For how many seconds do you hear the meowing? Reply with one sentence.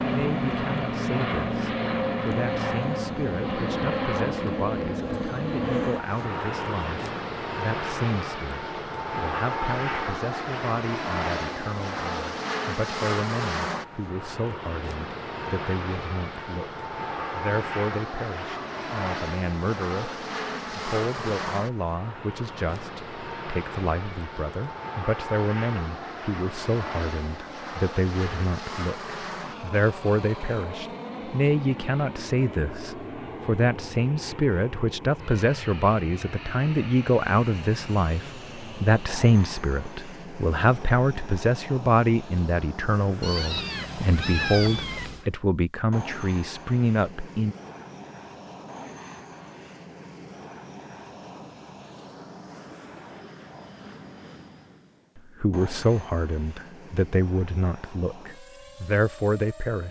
You can hear the meowing for 2 seconds altogether.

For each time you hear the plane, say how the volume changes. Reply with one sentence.
You can hear the plane from 0.0 to 59.8 s, getting quieter.